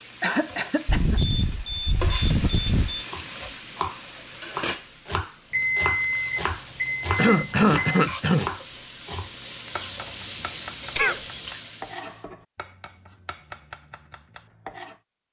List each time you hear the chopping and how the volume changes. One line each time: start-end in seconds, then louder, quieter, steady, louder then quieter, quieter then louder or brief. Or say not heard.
3.0-15.0 quieter.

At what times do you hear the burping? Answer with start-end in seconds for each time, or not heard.
not heard.